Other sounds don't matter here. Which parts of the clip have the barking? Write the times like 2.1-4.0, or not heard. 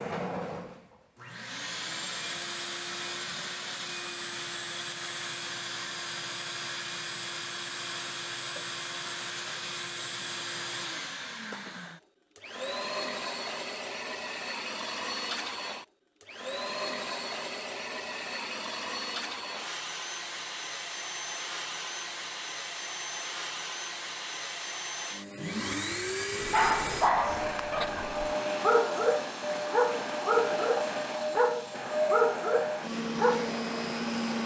26.4-33.5.